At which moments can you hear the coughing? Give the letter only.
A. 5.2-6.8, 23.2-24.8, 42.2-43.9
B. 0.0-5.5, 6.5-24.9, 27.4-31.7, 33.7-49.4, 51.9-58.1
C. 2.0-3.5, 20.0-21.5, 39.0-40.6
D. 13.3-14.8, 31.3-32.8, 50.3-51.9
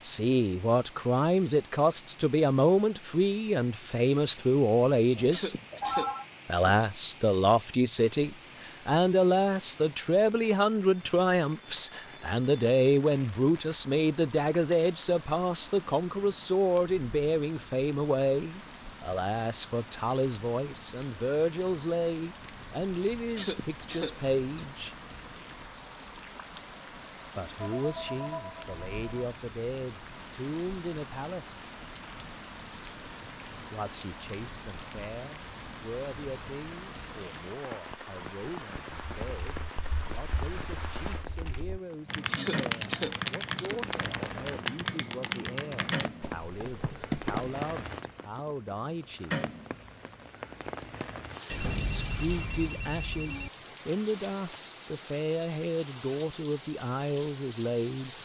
A.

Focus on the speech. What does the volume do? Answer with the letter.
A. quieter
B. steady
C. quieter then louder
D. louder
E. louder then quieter
C.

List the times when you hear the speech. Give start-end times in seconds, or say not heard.
0.0-5.5, 6.5-24.9, 27.4-31.7, 33.7-49.4, 51.9-58.1.